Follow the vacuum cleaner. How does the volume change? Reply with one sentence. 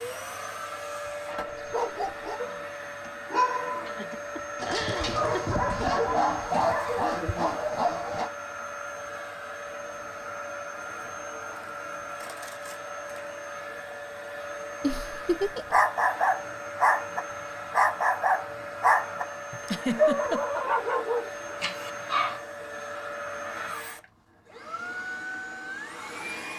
The volume of the vacuum cleaner stays about the same.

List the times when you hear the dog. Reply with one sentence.
The dog can be heard from 1.5 to 8.3 s and from 15.7 to 22.4 s.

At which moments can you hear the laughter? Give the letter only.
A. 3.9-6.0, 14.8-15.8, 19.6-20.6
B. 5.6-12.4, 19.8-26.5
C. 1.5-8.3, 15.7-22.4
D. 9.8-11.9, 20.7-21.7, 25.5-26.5
A.